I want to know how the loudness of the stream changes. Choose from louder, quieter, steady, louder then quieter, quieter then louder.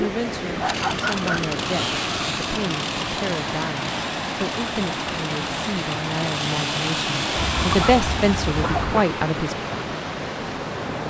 steady.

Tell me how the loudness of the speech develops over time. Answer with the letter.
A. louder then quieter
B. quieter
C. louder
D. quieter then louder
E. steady
C.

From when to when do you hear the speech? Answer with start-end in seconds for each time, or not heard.
0.0-9.6.